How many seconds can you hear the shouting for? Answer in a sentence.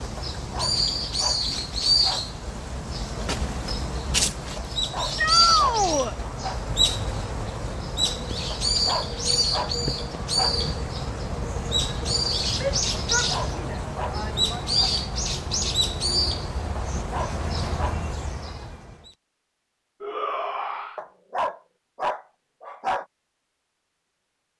You can hear the shouting for 4 seconds altogether.